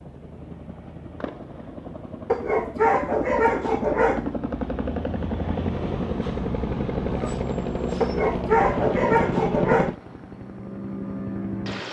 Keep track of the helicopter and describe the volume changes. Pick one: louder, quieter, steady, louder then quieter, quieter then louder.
louder.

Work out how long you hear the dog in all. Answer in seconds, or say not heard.
4 s.